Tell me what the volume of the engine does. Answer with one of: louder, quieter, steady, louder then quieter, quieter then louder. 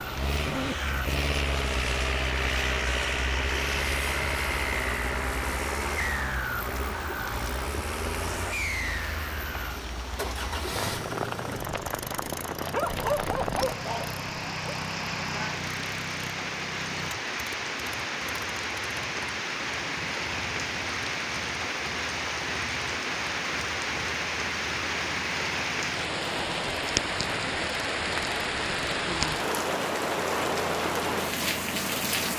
quieter.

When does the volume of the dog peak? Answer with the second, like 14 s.
13 s.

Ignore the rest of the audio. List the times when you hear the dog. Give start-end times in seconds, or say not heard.
12.4-14.8.